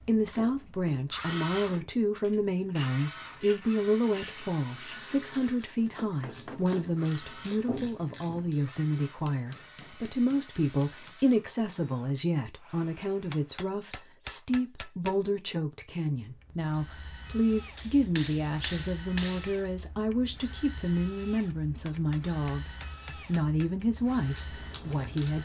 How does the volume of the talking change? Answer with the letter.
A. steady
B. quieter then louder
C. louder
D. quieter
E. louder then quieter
A.